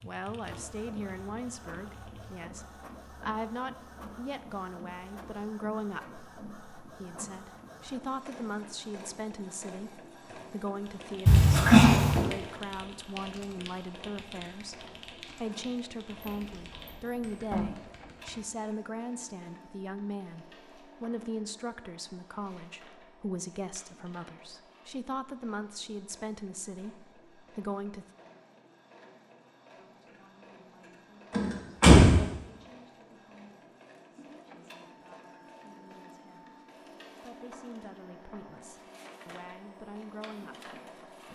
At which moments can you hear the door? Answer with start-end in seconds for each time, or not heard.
11.2-12.2, 16.2-17.6, 31.3-32.1.